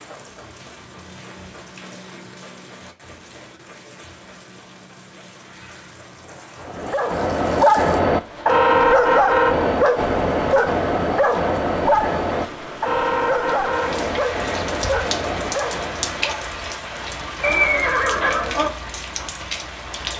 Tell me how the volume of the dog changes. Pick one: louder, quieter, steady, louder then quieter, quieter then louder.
quieter.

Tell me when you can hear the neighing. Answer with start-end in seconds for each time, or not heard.
17.4-18.7.